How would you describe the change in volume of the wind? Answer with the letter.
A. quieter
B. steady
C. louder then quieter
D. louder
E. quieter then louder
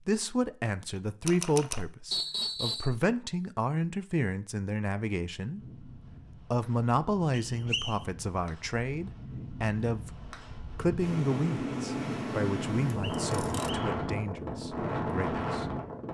D.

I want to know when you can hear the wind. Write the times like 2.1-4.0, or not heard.
5.5-16.0.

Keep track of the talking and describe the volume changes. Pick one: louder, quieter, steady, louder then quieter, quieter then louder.
quieter.